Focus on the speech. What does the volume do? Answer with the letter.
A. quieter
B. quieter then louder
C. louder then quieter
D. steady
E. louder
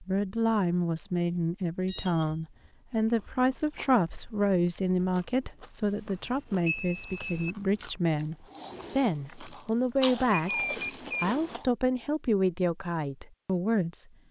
D.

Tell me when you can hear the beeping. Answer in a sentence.
The beeping can be heard from 1.9 to 2.4 s, from 5.8 to 7.5 s and from 10.3 to 11.3 s.